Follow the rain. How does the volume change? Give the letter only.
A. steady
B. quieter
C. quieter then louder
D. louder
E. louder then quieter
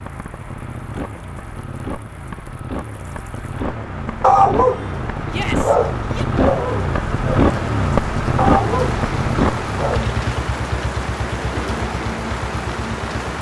D.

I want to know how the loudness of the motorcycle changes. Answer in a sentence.
The loudness of the motorcycle goes up, then down.